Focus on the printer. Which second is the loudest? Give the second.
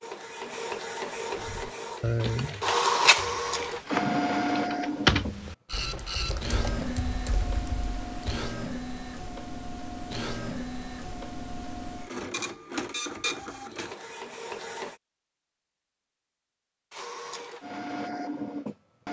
3 s.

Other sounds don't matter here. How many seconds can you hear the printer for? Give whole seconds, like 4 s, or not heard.
17 s.